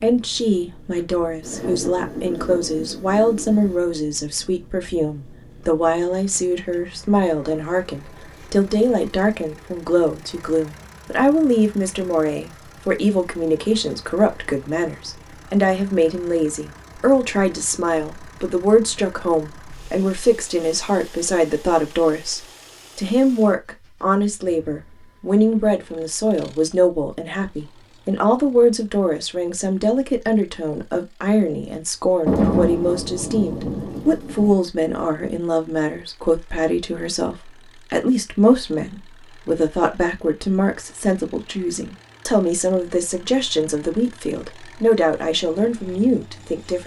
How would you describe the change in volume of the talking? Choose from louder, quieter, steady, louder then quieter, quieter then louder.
steady.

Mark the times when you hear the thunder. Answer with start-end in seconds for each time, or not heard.
1.4-3.7, 32.2-34.5.